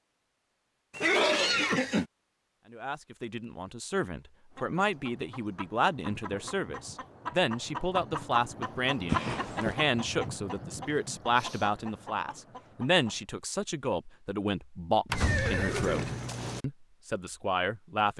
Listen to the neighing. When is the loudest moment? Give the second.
1 s.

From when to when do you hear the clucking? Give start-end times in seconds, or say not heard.
4.5-13.2.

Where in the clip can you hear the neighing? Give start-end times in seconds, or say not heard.
0.9-2.0, 9.1-9.8, 15.1-16.6.